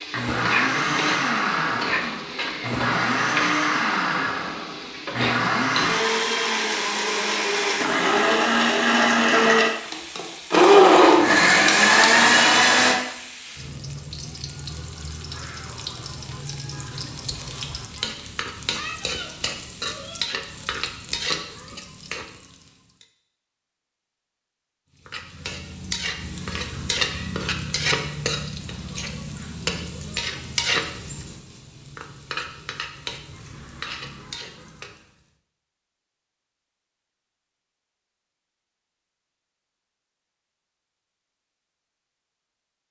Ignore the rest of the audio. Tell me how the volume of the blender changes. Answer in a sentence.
The loudness of the blender goes up.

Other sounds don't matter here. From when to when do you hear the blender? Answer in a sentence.
The blender can be heard from 0.0 to 12.9 s.